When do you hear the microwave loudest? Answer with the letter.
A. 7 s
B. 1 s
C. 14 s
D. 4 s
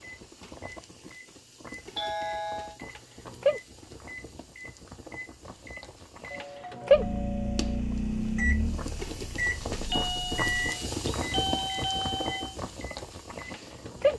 A.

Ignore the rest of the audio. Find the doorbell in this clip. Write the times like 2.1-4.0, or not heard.
1.9-2.8, 6.3-7.8, 9.9-12.6.